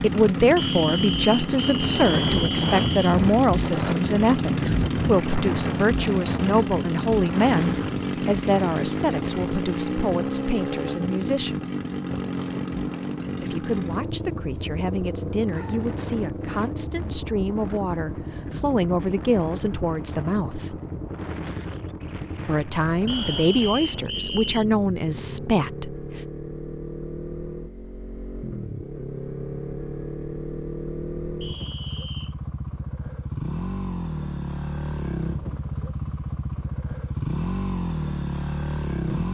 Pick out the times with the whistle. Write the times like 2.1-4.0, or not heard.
0.6-3.1, 23.1-24.6, 31.4-32.4.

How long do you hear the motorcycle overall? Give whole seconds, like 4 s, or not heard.
39 s.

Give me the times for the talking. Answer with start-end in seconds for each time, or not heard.
0.0-11.7, 13.4-20.8, 22.4-25.9.